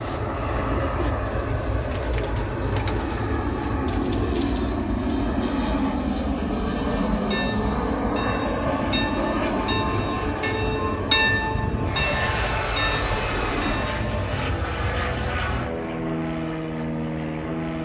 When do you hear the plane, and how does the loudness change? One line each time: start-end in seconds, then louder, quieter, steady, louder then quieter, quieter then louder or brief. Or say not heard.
0.0-17.8 steady.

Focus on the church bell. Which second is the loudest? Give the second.
11 s.